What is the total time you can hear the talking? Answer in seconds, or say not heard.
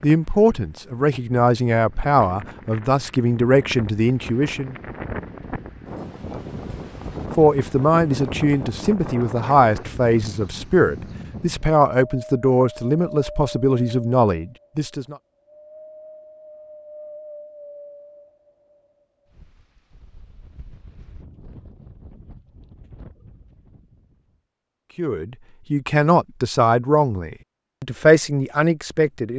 17 s.